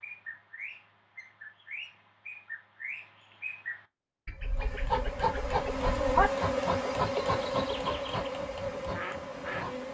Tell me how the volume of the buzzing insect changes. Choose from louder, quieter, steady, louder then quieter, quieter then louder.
quieter.